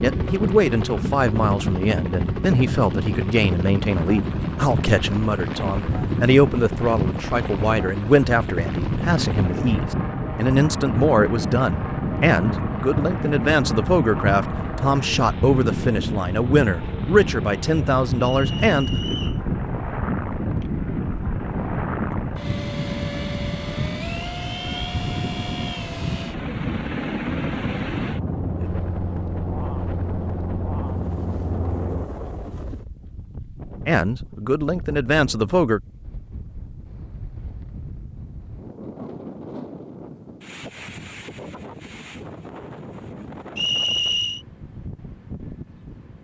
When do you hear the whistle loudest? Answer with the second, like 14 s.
44 s.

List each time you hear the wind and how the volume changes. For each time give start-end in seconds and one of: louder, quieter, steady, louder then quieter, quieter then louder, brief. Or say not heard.
0.0-46.1 quieter.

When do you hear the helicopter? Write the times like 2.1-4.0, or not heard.
0.0-32.0.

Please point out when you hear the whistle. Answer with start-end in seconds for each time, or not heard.
18.2-19.4, 43.5-44.5.